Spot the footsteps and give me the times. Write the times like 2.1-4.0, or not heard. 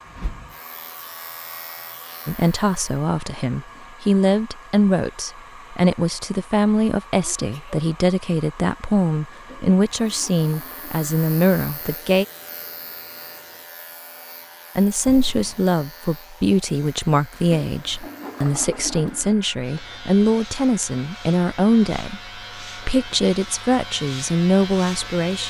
not heard.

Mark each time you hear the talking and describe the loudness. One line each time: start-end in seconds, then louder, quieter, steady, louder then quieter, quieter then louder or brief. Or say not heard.
2.2-12.2 steady
14.8-25.4 steady.